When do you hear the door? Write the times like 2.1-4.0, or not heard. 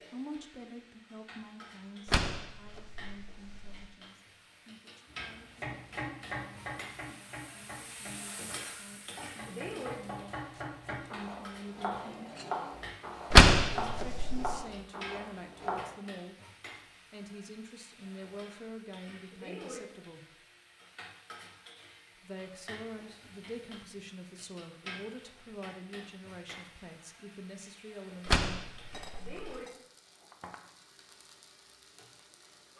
2.0-3.9, 13.3-14.6, 28.2-29.6.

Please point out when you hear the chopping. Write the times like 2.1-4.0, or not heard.
5.0-15.9.